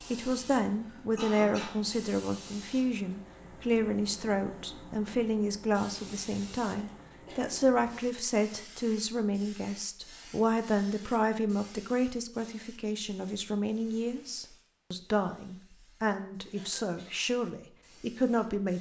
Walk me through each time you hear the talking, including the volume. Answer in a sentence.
You can hear the talking from 0.0 to 18.7 s, at a steady volume.